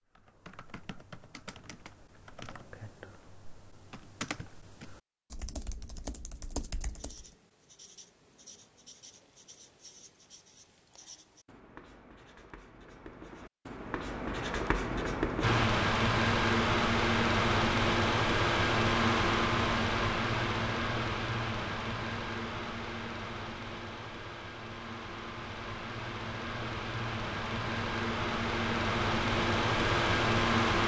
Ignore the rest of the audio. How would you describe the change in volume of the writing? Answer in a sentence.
The loudness of the writing goes up.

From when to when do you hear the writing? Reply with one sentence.
You can hear the writing from 6.9 to 15.7 s.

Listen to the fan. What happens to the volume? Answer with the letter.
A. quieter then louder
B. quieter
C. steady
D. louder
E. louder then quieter
A.